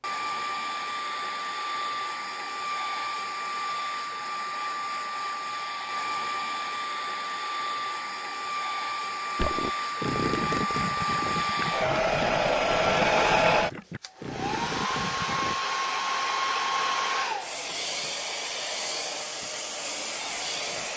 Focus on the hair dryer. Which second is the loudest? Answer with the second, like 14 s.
13 s.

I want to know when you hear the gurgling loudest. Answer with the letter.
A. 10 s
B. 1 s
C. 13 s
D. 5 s
A.